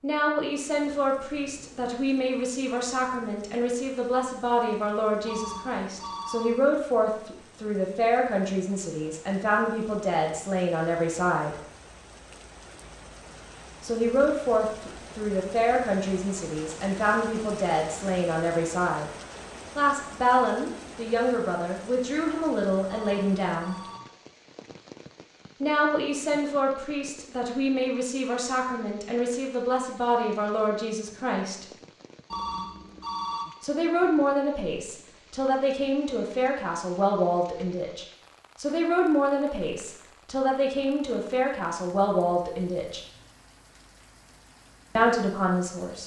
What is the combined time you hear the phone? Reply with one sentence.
You can hear the phone for 4 seconds altogether.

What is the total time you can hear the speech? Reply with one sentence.
The speech can be heard for 37 seconds in total.